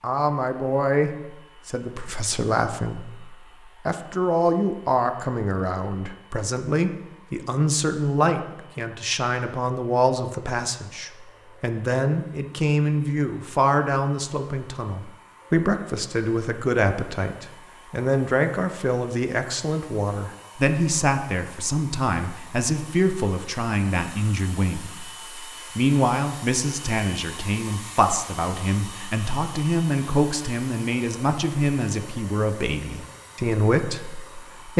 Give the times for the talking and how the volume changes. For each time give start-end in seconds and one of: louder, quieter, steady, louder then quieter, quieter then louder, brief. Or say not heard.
0.0-34.7 steady.